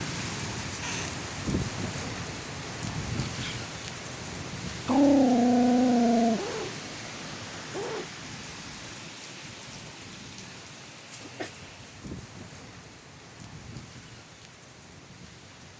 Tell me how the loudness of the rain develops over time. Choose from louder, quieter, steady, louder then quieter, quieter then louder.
quieter.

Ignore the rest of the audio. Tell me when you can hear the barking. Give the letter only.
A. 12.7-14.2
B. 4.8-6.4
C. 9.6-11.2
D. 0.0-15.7
B.